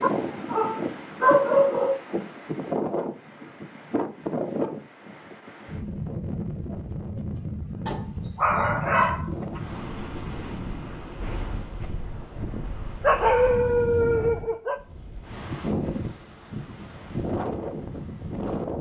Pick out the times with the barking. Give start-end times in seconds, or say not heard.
0.0-2.0, 7.8-9.6, 13.0-14.8.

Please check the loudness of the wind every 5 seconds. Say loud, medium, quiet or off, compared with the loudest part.
loud, loud, medium, loud.